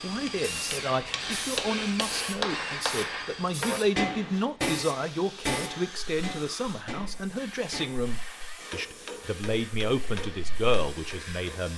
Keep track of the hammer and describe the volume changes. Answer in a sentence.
The loudness of the hammer goes down.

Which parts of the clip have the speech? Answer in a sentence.
You can hear the speech from 0.0 to 11.7 s.